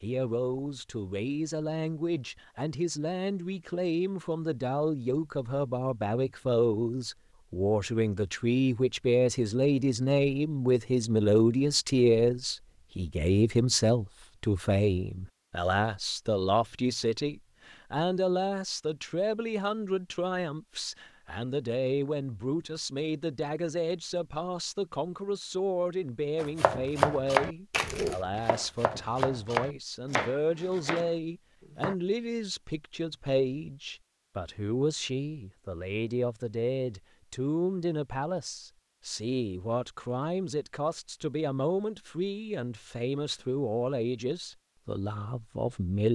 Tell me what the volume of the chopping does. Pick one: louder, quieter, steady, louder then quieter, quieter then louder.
quieter.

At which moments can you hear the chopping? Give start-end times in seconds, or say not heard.
26.4-31.9.